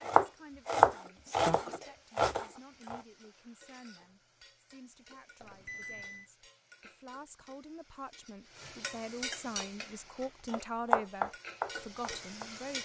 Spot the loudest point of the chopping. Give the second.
1 s.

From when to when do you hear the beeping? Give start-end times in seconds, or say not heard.
5.4-6.3.